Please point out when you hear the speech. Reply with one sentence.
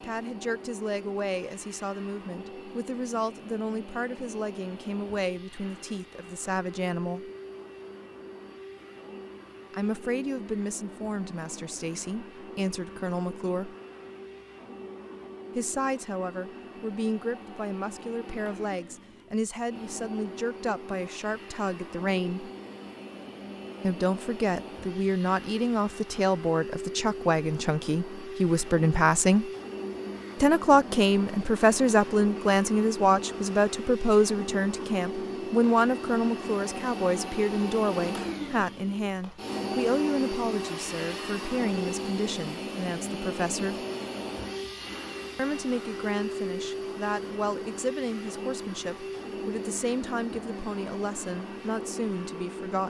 The speech can be heard from 0.0 to 7.3 s, from 9.7 to 13.8 s, from 15.6 to 22.5 s, from 23.8 to 29.5 s, from 30.4 to 43.9 s and from 45.4 to 52.8 s.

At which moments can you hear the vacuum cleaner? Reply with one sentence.
You can hear the vacuum cleaner from 0.0 to 52.8 s.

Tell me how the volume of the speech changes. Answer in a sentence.
The loudness of the speech goes up, then down.